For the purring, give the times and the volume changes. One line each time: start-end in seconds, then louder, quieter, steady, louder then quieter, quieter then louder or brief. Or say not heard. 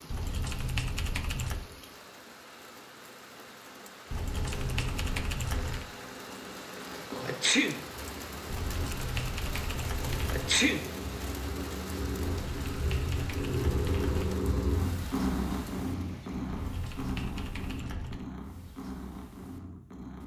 4.1-20.2 louder then quieter.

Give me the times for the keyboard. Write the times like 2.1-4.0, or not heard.
0.1-1.7, 4.1-5.8, 8.4-10.5, 12.4-14.3, 16.5-18.2.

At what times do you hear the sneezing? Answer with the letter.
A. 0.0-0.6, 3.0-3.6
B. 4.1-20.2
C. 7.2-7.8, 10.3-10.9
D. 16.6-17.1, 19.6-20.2
C.